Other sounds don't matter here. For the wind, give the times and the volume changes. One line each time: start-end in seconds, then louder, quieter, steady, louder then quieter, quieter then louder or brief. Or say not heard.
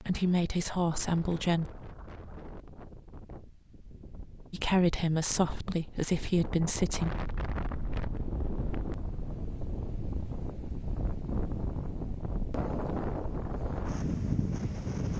0.1-15.1 louder.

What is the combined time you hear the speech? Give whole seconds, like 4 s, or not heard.
4 s.